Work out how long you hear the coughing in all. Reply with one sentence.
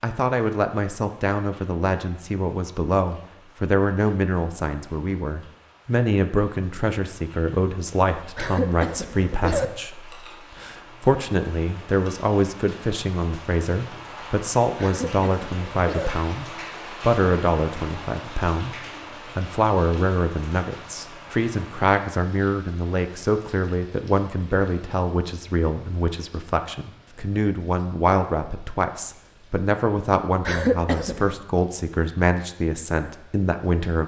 The coughing can be heard for 4 seconds in total.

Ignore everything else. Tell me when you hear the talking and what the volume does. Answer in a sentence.
The talking can be heard from 0.0 to 34.0 s, at a steady volume.